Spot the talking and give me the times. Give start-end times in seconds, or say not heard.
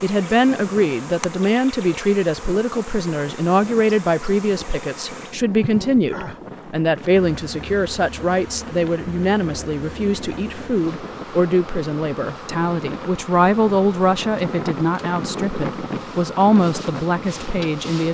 0.0-18.0.